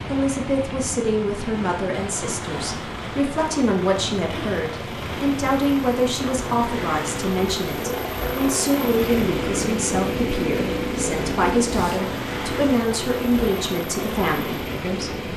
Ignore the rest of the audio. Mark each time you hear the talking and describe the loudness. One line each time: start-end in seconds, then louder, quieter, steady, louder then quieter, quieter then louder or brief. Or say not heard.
0.1-15.2 steady.